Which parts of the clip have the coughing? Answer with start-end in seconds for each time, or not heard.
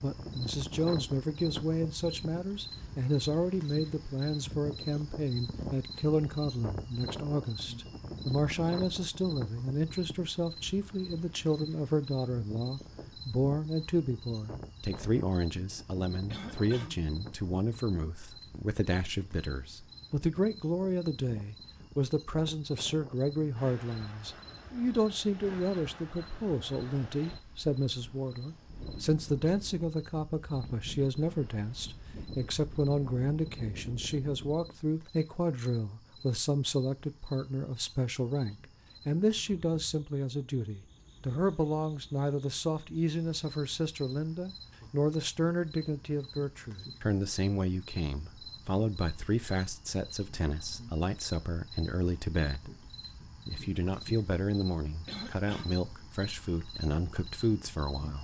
16.3-17.1, 55.0-55.9.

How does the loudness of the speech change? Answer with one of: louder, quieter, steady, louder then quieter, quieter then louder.
steady.